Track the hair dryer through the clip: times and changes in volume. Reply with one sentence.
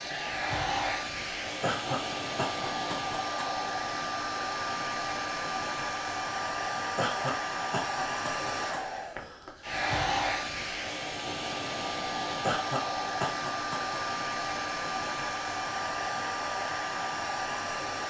You can hear the hair dryer from 0.0 to 18.0 s, at a steady volume.